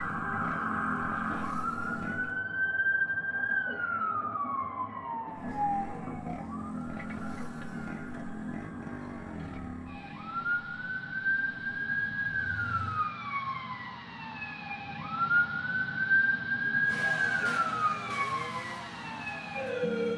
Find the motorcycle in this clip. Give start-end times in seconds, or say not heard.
0.0-2.5, 5.2-13.1, 16.9-20.1.